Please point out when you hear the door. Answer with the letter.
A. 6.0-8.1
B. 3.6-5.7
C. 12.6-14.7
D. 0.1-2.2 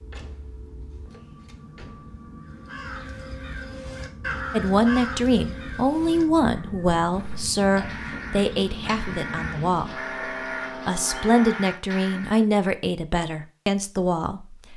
D.